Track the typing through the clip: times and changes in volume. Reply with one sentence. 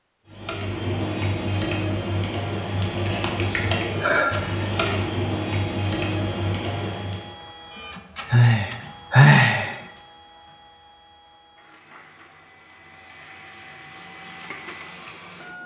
The typing can be heard from 0.3 to 7.3 s, at a steady volume.